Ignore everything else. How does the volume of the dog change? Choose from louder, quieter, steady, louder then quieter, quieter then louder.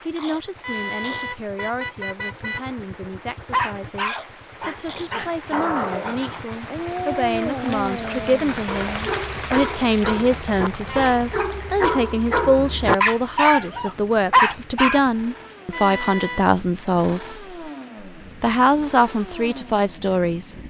louder.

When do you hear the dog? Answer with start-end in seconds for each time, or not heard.
3.5-15.0.